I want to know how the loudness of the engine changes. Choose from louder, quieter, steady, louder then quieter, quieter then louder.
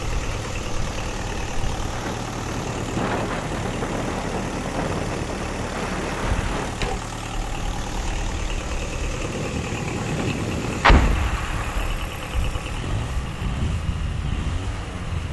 steady.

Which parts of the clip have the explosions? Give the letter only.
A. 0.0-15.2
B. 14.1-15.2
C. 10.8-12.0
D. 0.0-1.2
C.